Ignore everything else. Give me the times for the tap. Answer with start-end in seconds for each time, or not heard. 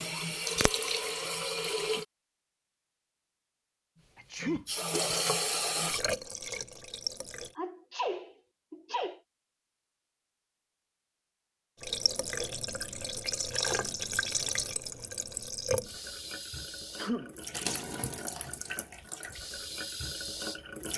0.0-2.0, 4.4-7.5, 11.8-20.9.